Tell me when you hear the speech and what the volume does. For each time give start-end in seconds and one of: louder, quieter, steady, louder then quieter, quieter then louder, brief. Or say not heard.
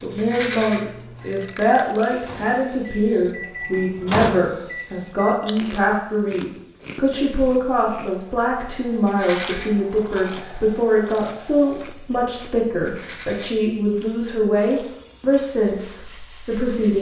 0.0-16.9 steady.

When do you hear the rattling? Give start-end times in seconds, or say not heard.
0.1-0.8, 9.1-9.7, 12.8-13.4.